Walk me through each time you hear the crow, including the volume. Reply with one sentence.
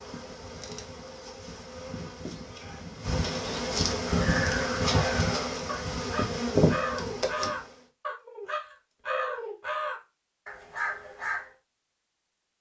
You can hear the crow from 4.0 to 11.5 s, at a steady volume.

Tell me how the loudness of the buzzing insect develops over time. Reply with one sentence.
The volume of the buzzing insect goes up.